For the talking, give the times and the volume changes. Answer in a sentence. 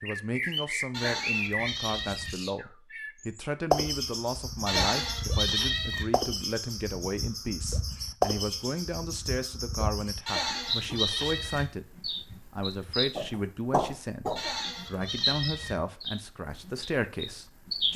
You can hear the talking from 0.0 to 17.9 s, at a steady volume.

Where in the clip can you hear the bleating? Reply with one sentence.
The bleating can be heard from 0.9 to 2.4 s, from 4.7 to 6.0 s, from 10.2 to 11.7 s and from 14.3 to 15.8 s.